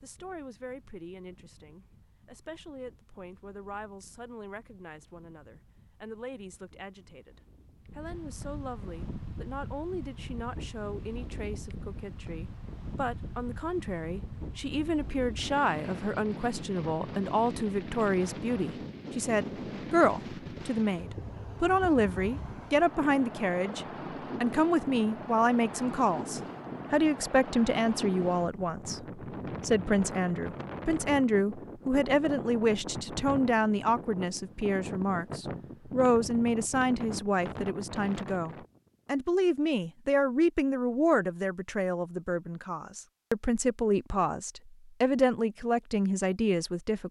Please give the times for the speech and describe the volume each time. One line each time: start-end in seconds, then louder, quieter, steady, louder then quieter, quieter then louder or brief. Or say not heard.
0.0-47.0 louder.